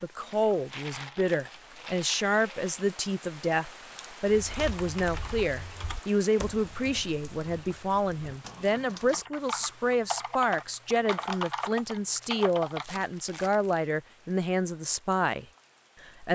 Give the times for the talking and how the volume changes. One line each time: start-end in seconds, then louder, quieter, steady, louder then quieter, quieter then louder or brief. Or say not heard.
0.0-16.2 steady.